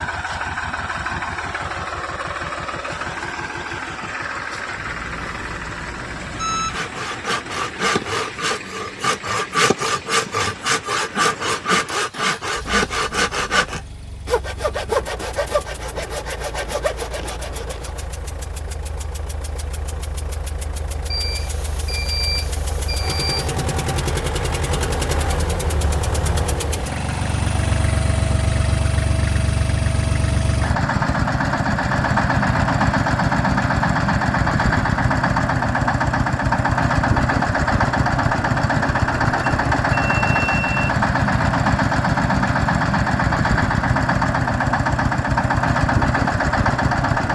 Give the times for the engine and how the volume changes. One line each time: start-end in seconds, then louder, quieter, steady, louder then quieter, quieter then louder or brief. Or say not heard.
0.0-47.3 quieter then louder.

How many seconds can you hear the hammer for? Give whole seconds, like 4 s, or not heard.
not heard.